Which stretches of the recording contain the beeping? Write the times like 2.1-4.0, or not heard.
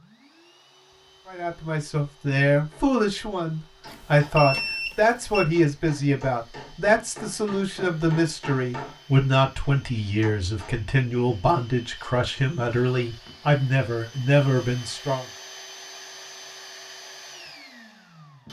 3.9-5.5.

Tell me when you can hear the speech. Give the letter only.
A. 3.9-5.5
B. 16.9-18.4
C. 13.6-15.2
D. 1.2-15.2
D.